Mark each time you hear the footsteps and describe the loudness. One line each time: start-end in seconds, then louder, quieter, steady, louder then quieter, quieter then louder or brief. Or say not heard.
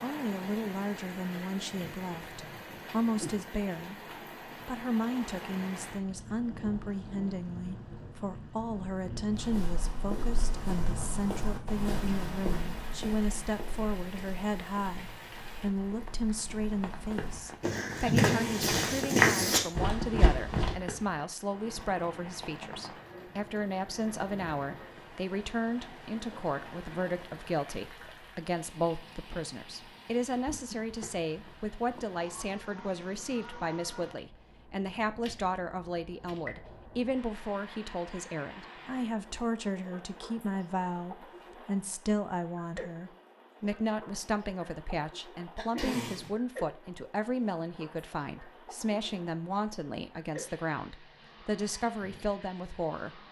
9.3-20.8 quieter then louder.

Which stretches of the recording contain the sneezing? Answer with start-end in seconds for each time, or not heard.
18.1-18.8, 45.5-46.3.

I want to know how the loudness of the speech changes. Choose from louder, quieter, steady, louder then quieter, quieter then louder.
steady.